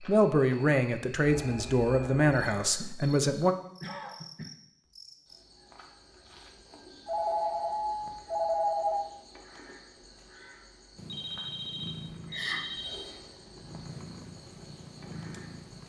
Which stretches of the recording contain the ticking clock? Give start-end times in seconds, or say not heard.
not heard.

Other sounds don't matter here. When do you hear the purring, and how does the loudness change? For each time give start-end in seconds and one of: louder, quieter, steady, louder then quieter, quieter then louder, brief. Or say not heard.
10.9-15.8 quieter then louder.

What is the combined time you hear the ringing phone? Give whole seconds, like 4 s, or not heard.
5 s.